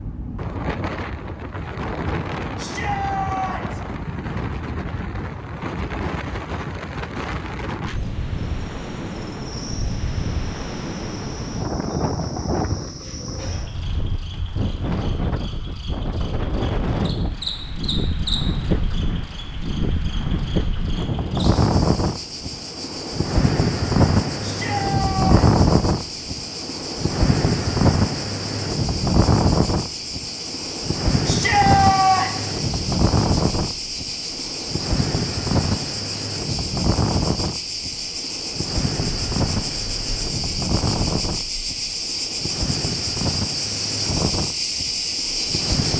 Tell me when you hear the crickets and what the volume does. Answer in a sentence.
The crickets can be heard from 8.3 to 45.9 s, getting louder.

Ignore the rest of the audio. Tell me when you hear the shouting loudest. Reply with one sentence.
The volume of the shouting peaks at 32 seconds.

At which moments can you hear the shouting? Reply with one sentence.
The shouting can be heard from 2.5 to 3.8 s, from 24.4 to 25.4 s and from 31.2 to 32.5 s.